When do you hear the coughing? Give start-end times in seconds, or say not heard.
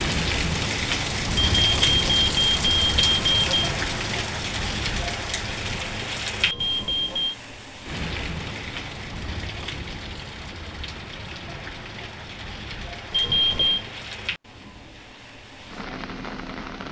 not heard.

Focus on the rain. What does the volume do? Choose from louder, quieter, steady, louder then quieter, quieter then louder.
quieter.